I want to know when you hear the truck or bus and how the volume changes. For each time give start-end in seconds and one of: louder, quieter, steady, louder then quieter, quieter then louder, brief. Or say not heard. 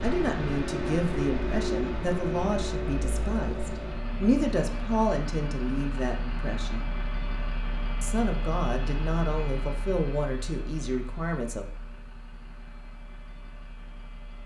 0.0-14.4 quieter.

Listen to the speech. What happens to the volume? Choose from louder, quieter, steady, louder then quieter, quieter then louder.
steady.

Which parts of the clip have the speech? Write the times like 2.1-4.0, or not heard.
0.0-6.9, 8.0-11.7.